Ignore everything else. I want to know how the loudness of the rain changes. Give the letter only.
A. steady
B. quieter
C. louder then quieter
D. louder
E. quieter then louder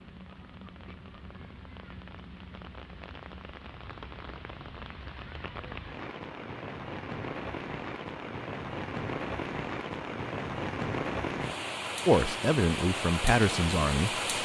D.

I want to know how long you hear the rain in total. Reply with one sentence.
The rain can be heard for 14 seconds in total.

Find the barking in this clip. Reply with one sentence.
You can't hear the barking here.